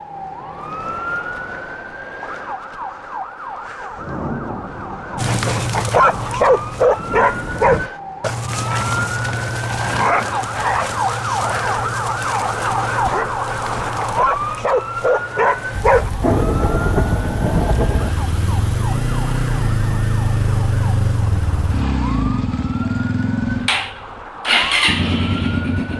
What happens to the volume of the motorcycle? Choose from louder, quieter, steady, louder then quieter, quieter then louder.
louder.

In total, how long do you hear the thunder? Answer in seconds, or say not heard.
6 s.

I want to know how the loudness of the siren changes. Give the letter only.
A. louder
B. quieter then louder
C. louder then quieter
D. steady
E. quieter
C.